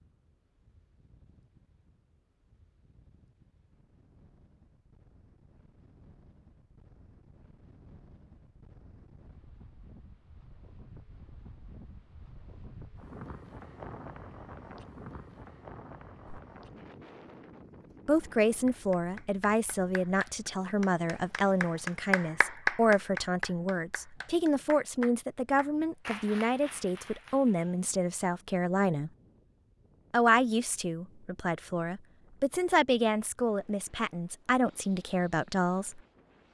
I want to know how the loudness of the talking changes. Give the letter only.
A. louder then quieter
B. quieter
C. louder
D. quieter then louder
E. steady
E.